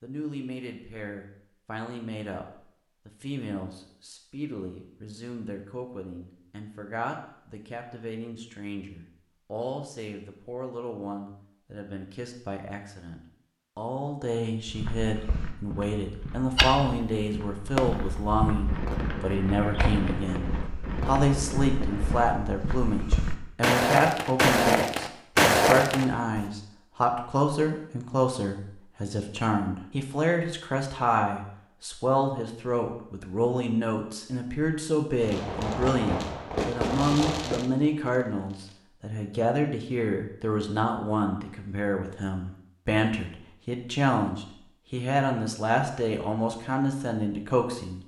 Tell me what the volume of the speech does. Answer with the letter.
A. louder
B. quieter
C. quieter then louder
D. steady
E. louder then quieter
A.